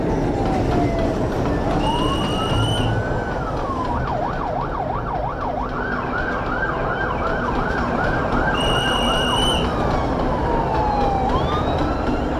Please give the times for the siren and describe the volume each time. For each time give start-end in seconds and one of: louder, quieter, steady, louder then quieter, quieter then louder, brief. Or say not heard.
0.0-12.3 steady.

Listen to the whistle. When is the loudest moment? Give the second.
9 s.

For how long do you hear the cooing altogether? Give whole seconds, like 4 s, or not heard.
not heard.